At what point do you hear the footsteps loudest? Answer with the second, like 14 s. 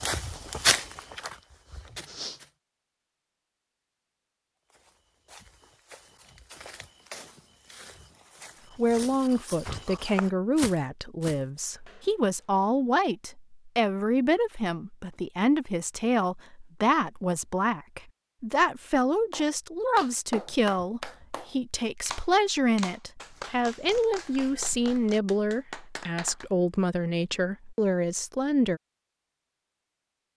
1 s.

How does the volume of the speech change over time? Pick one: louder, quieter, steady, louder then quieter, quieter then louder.
steady.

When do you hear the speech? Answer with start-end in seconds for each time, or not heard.
8.8-28.8.